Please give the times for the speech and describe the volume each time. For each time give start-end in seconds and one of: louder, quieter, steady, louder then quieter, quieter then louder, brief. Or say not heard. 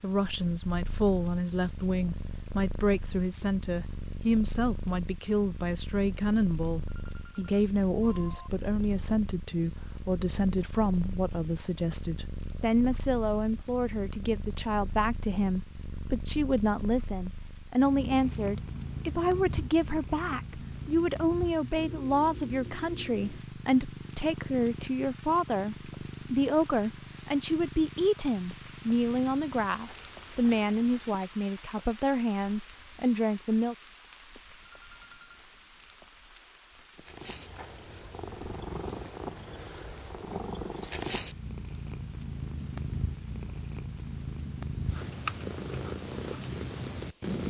0.0-33.8 steady.